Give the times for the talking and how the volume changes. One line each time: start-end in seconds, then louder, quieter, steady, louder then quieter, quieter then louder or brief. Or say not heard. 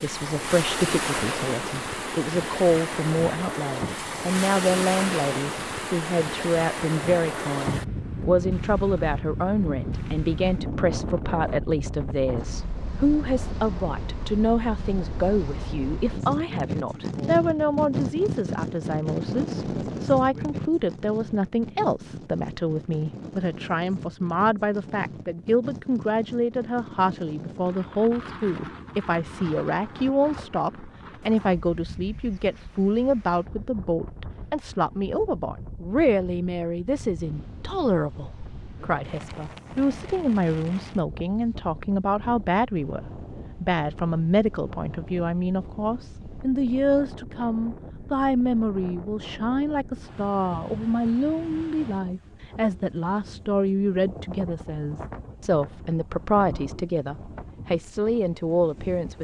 0.0-43.0 steady
43.6-59.1 steady.